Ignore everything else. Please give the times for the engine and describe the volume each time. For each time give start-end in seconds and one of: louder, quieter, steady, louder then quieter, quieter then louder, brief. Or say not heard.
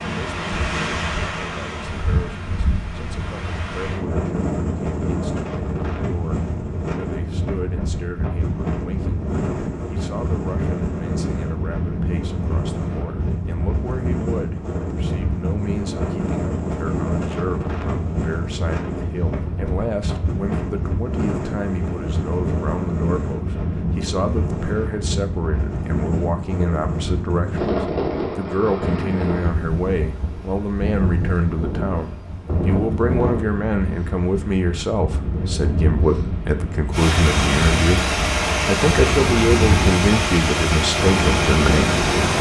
36.9-42.3 steady.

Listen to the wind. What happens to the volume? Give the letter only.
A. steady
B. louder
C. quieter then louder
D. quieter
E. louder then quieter
A.